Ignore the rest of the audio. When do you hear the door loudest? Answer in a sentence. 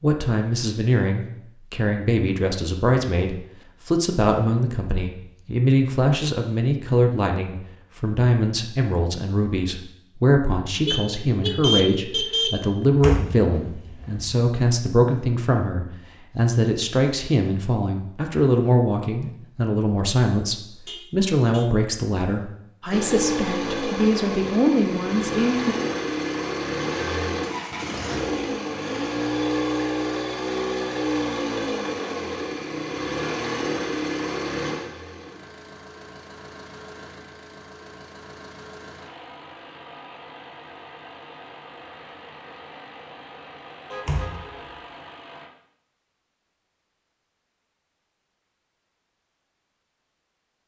The volume of the door peaks at 13 seconds.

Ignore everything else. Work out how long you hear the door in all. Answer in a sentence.
The door can be heard for 2 seconds in total.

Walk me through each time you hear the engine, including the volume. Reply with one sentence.
The engine can be heard from 22.9 to 45.5 s, getting quieter.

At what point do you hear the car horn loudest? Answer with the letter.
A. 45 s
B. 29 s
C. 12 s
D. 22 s
C.